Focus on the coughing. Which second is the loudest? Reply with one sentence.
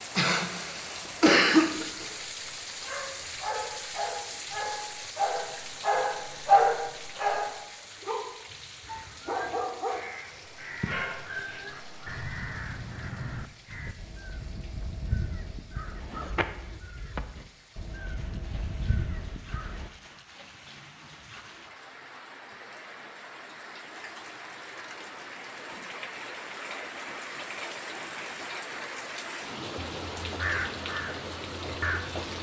The volume of the coughing peaks at 1 second.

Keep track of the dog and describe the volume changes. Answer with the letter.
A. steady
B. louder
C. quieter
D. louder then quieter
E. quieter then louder
D.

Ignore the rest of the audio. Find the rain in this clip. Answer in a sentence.
The rain can be heard from 0.0 to 32.3 s.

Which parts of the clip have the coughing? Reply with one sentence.
You can hear the coughing from 0.1 to 2.0 s.